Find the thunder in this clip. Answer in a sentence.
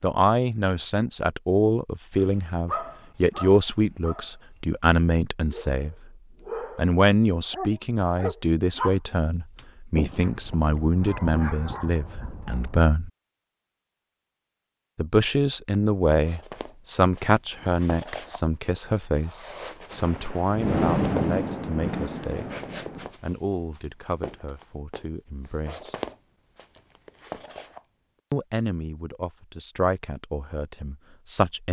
The thunder can be heard from 19.9 to 23.1 s.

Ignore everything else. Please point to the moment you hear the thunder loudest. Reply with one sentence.
The loudest moment of the thunder is at 21 seconds.